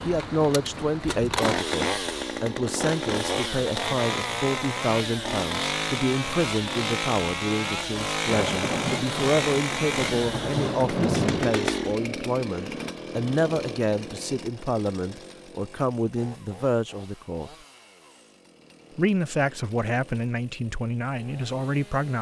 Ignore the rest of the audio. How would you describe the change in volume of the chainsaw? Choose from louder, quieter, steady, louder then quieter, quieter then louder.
quieter.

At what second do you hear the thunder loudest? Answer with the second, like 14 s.
11 s.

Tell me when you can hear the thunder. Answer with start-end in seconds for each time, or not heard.
8.2-11.6.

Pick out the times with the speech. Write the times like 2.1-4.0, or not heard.
0.0-17.5, 18.9-22.1.